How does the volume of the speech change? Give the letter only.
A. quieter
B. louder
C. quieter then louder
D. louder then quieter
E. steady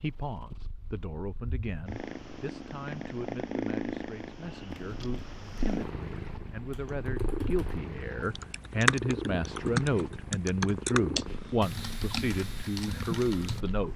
B.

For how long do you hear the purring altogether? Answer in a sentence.
The purring can be heard for 14 seconds in total.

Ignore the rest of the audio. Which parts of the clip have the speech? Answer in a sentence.
The speech can be heard from 0.0 to 13.9 s.